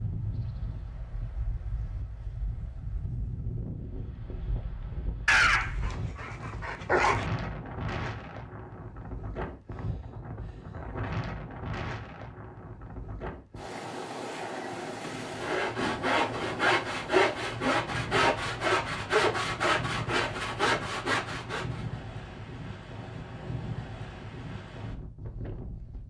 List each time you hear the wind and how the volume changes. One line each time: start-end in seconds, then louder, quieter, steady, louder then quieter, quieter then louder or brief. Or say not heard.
0.0-26.0 steady.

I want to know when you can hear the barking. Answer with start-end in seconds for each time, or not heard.
5.2-7.3.